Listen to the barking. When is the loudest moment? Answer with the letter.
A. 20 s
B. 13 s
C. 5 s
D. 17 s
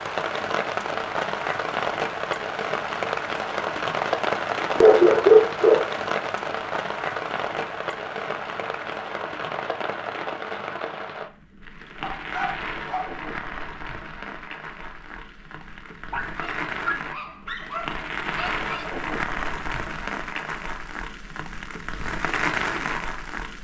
C.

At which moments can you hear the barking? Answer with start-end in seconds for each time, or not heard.
4.8-5.9, 12.0-13.2, 16.1-18.9.